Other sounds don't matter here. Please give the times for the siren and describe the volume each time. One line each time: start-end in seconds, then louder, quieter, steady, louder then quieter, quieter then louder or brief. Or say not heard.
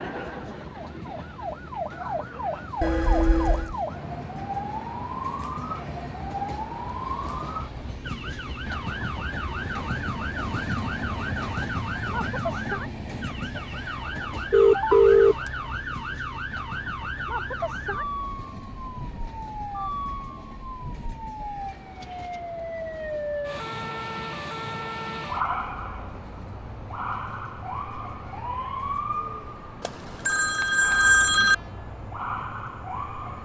0.0-33.4 steady.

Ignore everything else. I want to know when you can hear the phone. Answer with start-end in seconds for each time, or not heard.
2.8-3.8, 14.5-15.3, 29.8-31.6.